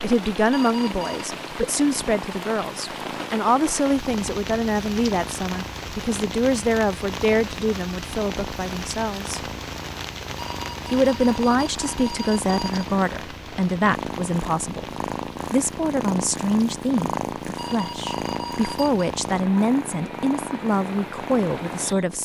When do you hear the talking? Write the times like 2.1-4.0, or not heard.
0.0-9.5, 10.9-14.8, 15.5-22.2.